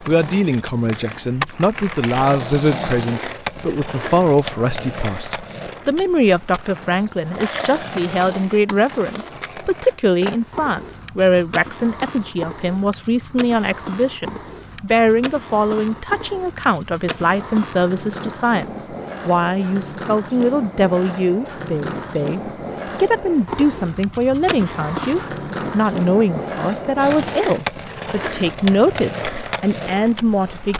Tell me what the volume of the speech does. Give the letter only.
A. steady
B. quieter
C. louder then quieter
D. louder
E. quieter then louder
A.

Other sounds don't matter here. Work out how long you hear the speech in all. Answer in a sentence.
You can hear the speech for 31 seconds altogether.